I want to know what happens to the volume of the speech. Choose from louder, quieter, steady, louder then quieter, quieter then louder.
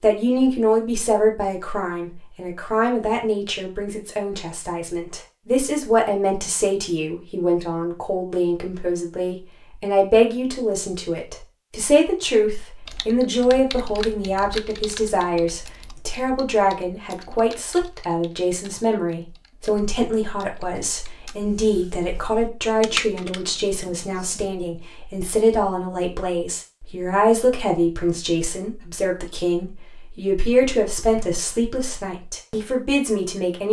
steady.